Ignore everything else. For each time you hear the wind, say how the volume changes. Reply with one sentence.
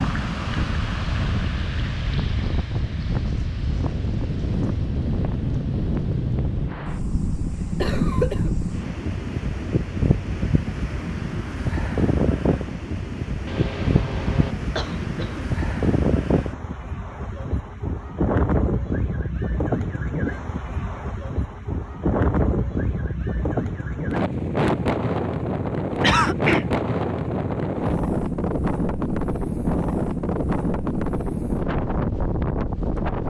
You can hear the wind from 0.0 to 33.2 s, at a steady volume.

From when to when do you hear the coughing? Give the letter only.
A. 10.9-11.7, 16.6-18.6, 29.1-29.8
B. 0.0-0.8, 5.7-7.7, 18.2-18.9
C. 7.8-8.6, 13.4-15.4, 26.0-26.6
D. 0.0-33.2
C.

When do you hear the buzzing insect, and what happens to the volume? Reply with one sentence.
You can't hear the buzzing insect here.